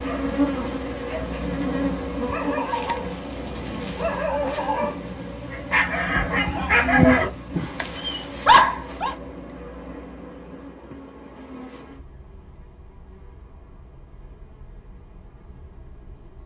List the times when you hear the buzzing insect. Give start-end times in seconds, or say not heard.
0.0-16.4.